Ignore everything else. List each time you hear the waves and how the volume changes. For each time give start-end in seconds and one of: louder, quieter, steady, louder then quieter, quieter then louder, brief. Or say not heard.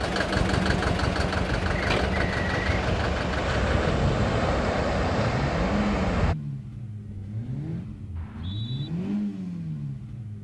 0.0-6.3 louder.